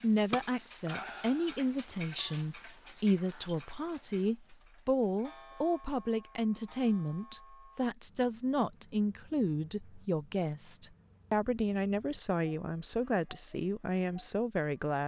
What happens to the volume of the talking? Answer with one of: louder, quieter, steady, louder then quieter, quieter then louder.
steady.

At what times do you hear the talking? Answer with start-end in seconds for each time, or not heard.
0.0-15.0.